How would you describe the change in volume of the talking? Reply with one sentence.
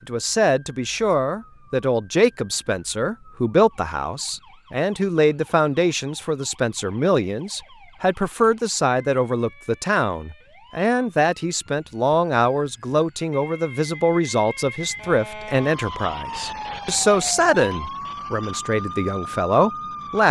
The volume of the talking stays about the same.